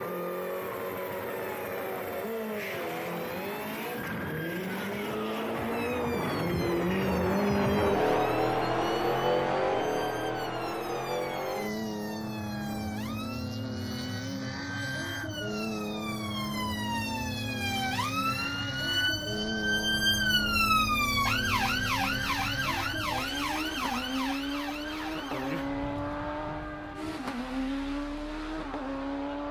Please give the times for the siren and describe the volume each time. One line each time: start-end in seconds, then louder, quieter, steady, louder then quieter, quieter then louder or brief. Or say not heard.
0.0-29.4 louder then quieter.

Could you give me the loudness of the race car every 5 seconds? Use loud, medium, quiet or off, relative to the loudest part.
medium, loud, medium, medium, medium, medium.